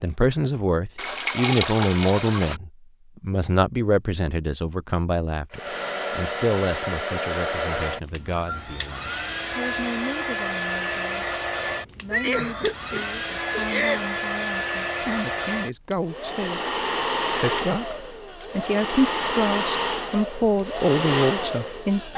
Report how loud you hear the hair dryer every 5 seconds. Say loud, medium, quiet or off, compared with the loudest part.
off, loud, loud, loud, loud.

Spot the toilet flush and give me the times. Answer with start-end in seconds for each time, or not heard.
0.9-2.6.